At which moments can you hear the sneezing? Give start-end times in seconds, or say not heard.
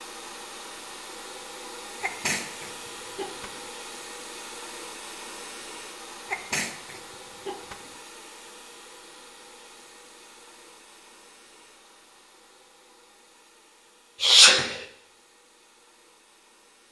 2.0-3.6, 6.3-7.9, 14.2-14.8.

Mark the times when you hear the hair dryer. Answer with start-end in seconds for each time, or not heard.
0.0-16.8.